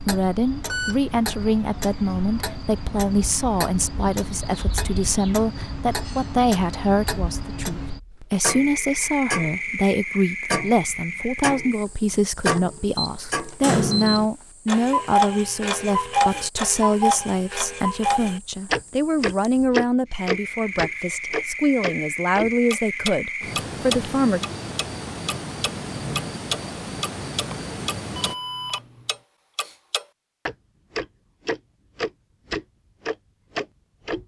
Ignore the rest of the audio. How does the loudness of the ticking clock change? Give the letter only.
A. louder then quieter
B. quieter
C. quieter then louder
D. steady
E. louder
A.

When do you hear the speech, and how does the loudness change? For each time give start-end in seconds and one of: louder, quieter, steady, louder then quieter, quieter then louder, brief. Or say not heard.
0.1-24.4 steady.